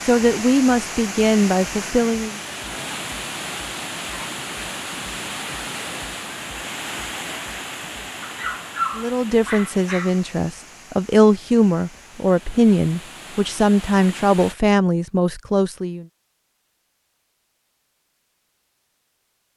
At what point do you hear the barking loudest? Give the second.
9 s.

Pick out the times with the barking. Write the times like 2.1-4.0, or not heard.
8.2-10.2.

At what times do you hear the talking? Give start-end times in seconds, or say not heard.
0.1-2.4, 8.9-16.1.